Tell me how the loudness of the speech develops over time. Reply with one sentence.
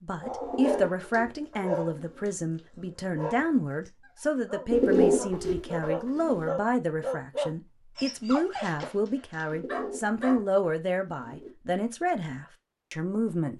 The volume of the speech stays about the same.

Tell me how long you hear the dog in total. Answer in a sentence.
The dog can be heard for 10 seconds in total.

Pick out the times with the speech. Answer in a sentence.
You can hear the speech from 0.0 to 13.5 s.